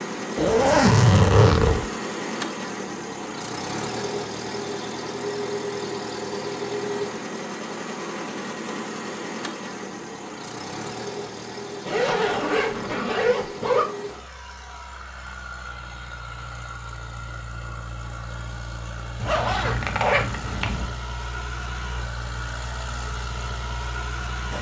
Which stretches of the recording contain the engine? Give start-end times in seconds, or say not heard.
0.0-24.5.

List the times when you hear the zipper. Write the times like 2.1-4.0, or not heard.
0.3-1.9, 11.8-13.8, 19.1-20.9.